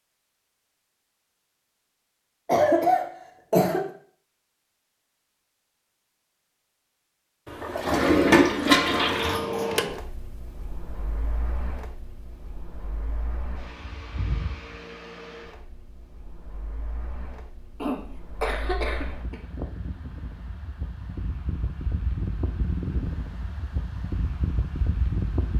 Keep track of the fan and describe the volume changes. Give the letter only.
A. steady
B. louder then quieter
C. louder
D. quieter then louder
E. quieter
D.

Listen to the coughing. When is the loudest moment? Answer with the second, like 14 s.
3 s.